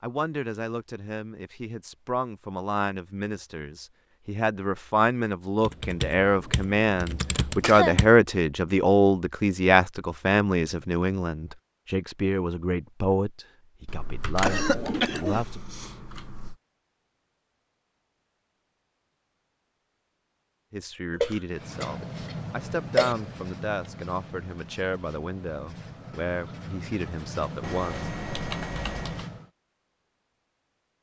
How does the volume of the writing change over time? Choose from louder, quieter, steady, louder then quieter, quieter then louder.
quieter then louder.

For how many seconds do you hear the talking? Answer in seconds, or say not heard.
23 s.